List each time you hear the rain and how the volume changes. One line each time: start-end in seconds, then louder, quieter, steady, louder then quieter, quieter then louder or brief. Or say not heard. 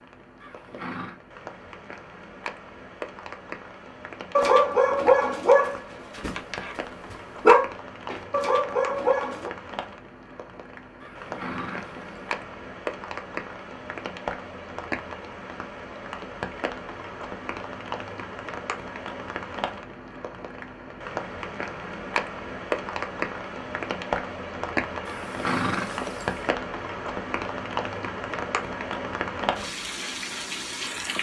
0.0-31.1 louder.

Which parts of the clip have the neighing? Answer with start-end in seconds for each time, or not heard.
0.4-1.1, 11.0-12.2, 25.1-26.5.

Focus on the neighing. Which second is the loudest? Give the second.
26 s.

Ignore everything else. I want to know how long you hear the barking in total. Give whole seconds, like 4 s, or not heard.
5 s.